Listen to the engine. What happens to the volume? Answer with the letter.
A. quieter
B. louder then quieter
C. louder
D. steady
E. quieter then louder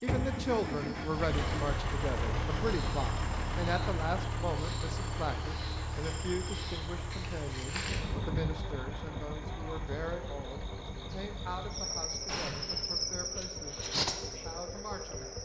A.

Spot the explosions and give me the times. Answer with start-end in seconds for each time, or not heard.
12.2-12.8.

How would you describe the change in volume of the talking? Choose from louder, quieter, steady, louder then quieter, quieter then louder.
quieter.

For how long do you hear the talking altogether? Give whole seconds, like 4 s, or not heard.
15 s.